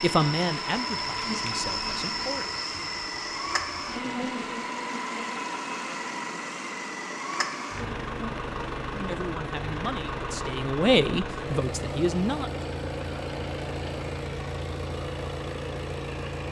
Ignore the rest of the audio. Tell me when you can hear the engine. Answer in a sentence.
You can hear the engine from 0.0 to 16.4 s.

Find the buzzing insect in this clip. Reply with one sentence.
The buzzing insect can be heard from 0.0 to 9.2 s.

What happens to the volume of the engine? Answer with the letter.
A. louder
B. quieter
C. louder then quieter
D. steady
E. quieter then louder
D.